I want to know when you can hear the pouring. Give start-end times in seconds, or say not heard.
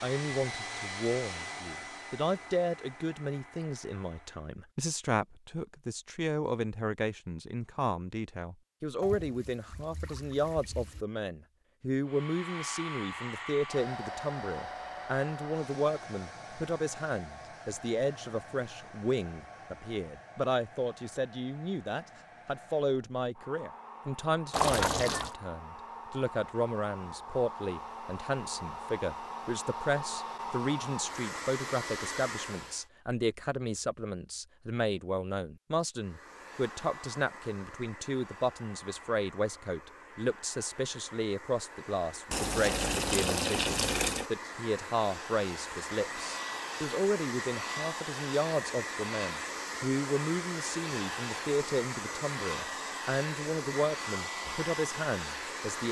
9.0-11.1, 24.5-25.3, 42.3-44.2.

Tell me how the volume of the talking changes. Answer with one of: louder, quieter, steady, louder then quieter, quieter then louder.
steady.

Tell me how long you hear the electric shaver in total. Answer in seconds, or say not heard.
not heard.